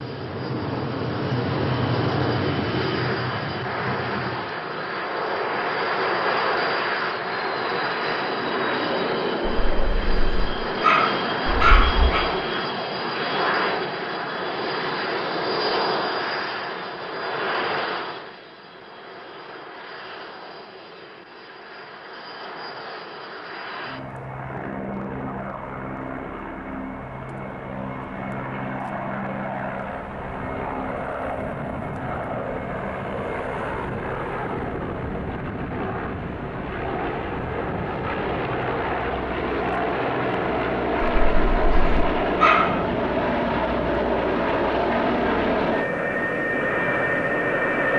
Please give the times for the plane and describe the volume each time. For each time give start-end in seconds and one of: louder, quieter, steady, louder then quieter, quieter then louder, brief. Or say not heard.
0.0-47.9 quieter then louder.